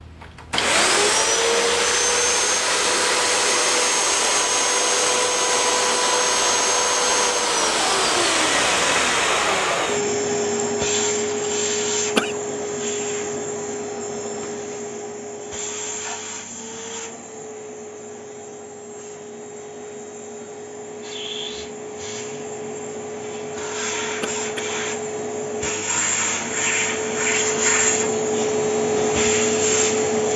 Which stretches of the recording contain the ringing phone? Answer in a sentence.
The ringing phone can't be heard in this clip.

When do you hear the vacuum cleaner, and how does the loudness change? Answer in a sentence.
The vacuum cleaner can be heard from 0.0 to 30.3 s, getting quieter then louder.